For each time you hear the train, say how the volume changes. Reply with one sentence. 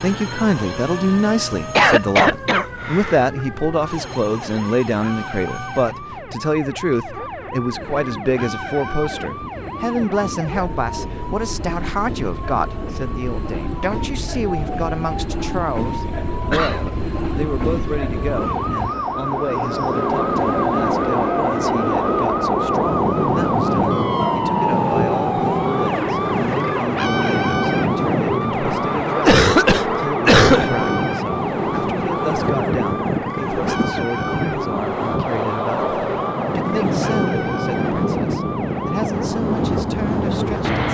The train can be heard from 0.0 to 40.8 s, getting louder.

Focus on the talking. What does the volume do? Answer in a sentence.
The loudness of the talking goes down.